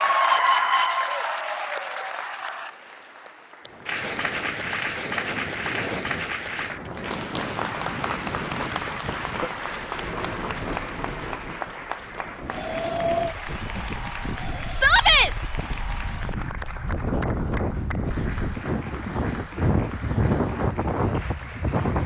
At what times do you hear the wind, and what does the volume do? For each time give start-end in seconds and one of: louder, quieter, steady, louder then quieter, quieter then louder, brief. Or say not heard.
3.6-22.0 louder.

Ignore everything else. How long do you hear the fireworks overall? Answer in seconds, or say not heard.
not heard.